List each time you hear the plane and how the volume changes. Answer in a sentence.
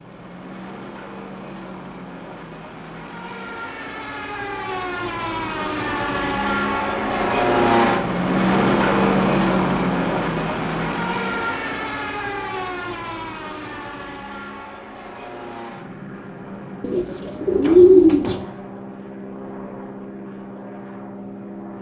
You can hear the plane from 0.0 to 21.7 s, getting louder then quieter.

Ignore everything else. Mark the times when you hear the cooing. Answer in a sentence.
You can hear the cooing from 16.8 to 18.4 s.